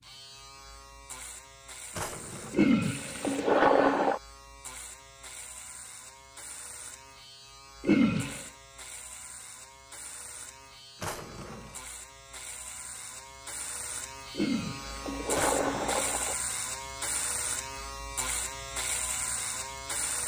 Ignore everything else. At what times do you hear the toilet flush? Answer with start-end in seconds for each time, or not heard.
2.5-4.2, 7.8-8.5, 14.3-16.4.